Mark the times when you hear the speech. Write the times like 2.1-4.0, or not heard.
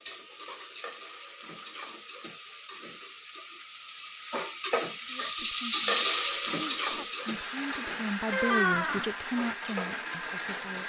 5.0-10.8.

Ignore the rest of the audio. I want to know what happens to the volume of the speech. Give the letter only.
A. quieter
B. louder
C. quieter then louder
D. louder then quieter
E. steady
D.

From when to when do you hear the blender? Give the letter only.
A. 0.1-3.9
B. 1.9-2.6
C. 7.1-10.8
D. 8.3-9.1
C.